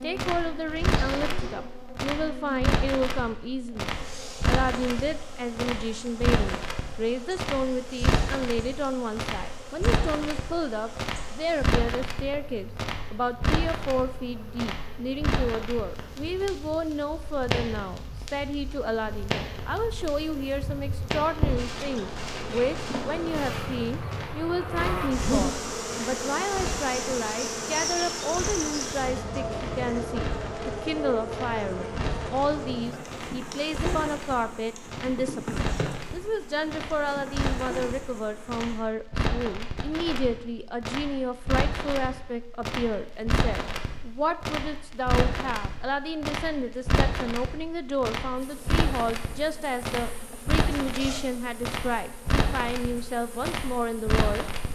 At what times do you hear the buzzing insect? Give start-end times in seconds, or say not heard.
0.0-38.9, 48.4-54.7.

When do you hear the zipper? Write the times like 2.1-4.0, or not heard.
0.7-1.6, 25.1-25.8, 50.8-51.3.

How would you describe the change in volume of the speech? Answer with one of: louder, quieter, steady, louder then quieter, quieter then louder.
steady.